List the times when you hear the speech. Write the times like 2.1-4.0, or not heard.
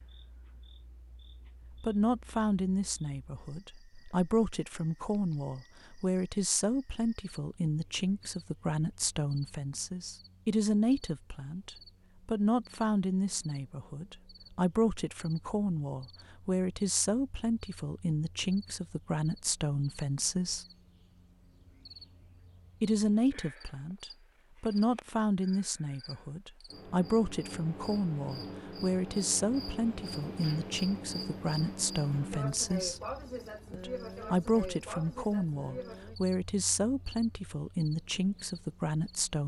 1.8-20.6, 22.8-33.0, 33.7-39.4.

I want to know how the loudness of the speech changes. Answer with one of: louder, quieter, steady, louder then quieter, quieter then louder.
steady.